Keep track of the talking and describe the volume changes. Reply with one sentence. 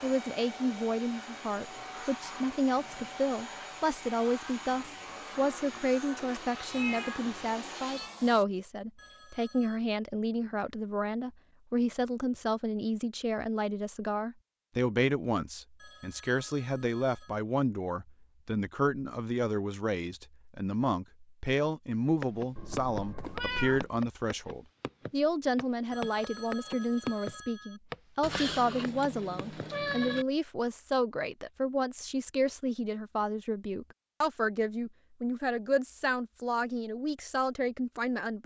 The loudness of the talking stays about the same.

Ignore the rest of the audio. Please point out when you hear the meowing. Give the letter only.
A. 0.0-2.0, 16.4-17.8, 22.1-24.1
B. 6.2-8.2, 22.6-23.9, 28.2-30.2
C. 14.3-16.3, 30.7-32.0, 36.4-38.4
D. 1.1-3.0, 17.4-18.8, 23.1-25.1
B.